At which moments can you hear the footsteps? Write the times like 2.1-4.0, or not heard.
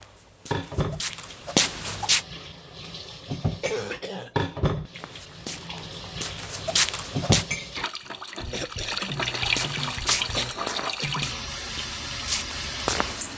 0.0-2.2, 5.0-7.5, 9.4-13.3.